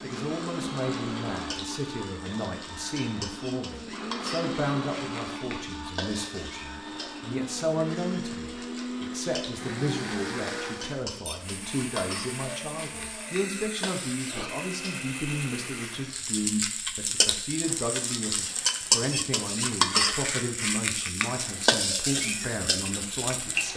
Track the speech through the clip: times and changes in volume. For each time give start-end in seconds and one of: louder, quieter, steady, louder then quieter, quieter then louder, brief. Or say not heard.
0.0-23.7 steady.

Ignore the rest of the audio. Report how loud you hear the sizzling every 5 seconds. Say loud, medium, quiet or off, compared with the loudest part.
quiet, quiet, quiet, loud, loud.